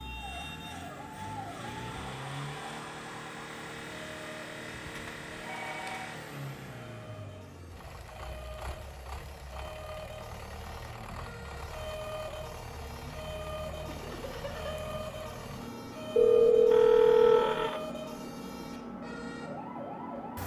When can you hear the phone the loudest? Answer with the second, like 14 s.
17 s.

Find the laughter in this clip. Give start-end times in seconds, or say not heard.
13.8-14.8.